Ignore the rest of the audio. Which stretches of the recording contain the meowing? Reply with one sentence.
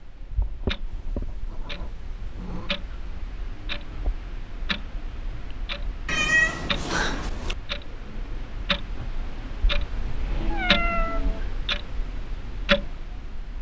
You can hear the meowing from 0.8 to 2.8 s, from 6.0 to 7.5 s and from 10.4 to 11.4 s.